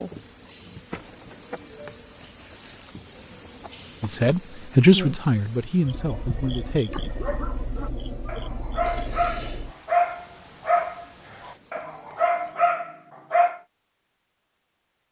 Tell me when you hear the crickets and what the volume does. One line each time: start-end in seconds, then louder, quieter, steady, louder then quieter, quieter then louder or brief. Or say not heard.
0.0-12.6 quieter.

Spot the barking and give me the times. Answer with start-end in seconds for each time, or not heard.
6.0-13.6.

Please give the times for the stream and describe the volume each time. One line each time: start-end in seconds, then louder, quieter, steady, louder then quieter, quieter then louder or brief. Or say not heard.
not heard.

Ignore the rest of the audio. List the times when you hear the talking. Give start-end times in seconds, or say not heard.
4.0-7.1.